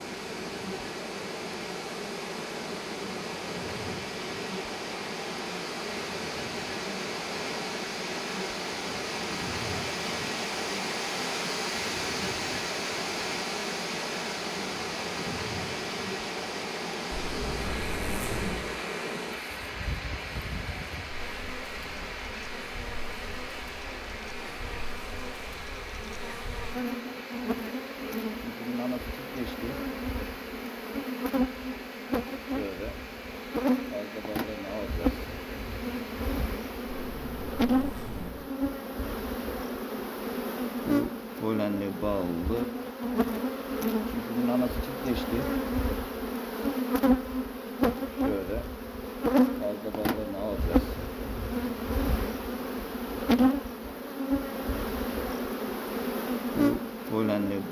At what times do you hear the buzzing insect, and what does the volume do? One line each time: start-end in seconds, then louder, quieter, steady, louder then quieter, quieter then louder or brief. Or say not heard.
0.0-57.6 louder.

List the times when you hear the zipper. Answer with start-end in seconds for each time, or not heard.
17.1-18.6, 36.9-38.4.